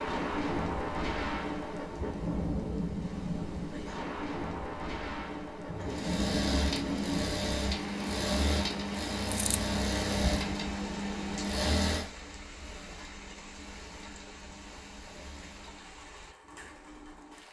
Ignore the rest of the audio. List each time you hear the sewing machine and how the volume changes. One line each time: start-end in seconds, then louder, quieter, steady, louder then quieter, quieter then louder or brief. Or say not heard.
5.7-17.4 quieter.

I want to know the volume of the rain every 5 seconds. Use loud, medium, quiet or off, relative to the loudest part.
loud, medium, quiet, quiet.